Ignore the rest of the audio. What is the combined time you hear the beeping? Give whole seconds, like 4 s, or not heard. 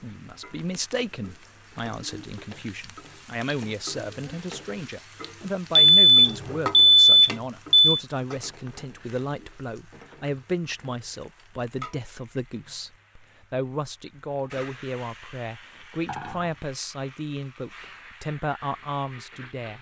2 s.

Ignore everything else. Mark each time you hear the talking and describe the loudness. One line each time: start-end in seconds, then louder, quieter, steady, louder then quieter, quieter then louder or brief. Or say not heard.
0.0-19.7 steady.